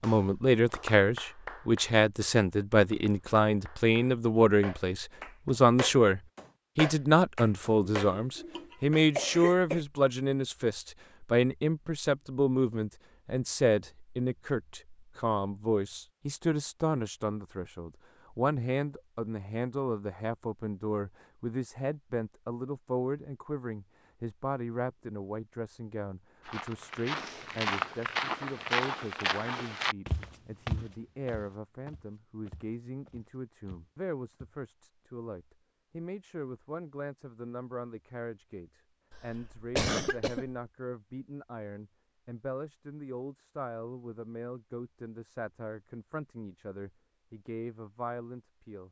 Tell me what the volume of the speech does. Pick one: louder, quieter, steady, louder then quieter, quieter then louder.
quieter.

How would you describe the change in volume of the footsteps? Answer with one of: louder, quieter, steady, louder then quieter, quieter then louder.
quieter.